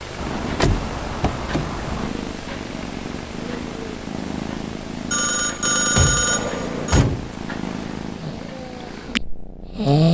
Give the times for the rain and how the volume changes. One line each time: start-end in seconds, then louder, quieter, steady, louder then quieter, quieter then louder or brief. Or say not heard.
not heard.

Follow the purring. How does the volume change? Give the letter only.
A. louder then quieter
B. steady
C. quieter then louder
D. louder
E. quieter
B.